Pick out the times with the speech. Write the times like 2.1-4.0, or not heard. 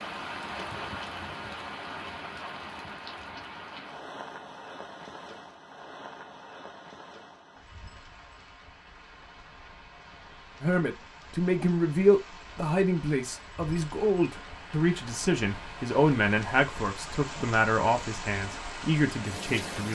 10.6-19.9.